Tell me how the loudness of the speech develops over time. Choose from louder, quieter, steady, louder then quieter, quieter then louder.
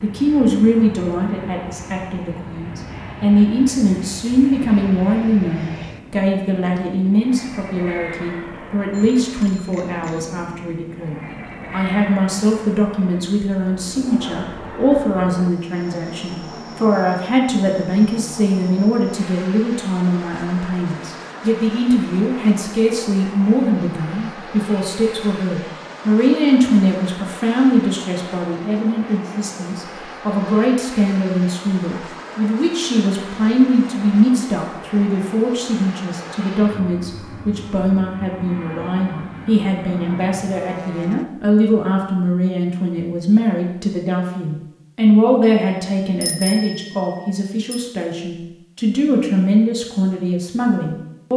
steady.